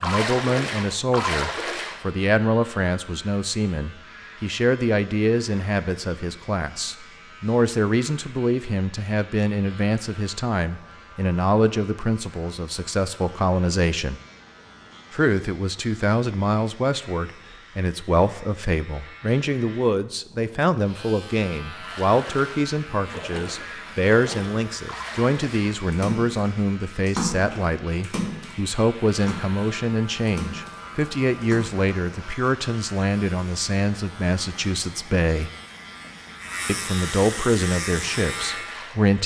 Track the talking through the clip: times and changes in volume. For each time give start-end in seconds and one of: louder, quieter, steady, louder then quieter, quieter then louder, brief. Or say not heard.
0.0-14.2 steady
15.1-35.5 steady
36.6-39.2 brief.